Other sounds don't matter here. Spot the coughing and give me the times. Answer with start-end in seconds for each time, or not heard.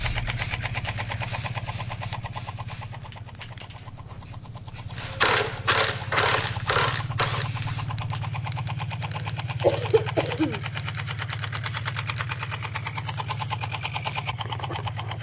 9.6-10.6.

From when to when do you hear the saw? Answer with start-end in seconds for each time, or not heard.
not heard.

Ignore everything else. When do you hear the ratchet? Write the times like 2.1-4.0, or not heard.
5.0-12.7.